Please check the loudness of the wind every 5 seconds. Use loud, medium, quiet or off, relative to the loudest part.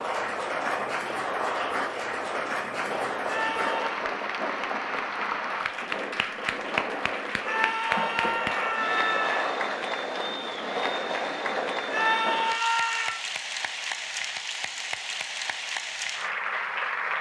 loud, loud, loud, off.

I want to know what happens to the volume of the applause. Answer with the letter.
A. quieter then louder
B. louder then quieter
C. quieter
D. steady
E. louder
D.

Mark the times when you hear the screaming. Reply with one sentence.
The screaming can be heard from 3.2 to 4.0 s, from 7.4 to 9.6 s and from 11.9 to 13.2 s.